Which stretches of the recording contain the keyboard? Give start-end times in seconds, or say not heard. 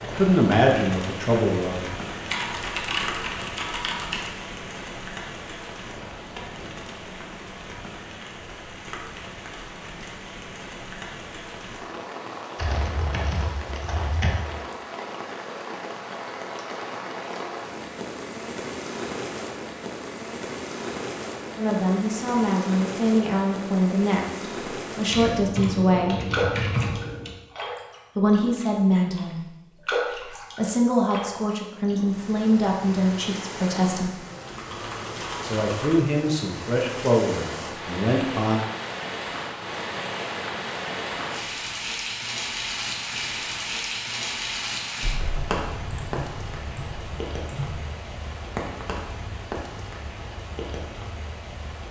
2.3-4.3, 12.6-14.3, 25.1-27.4, 34.4-36.0, 45.0-47.8.